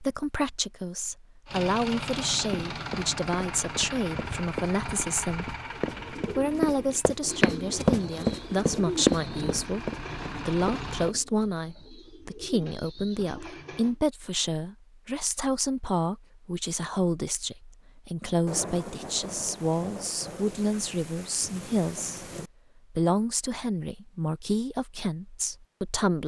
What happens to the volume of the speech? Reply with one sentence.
The volume of the speech stays about the same.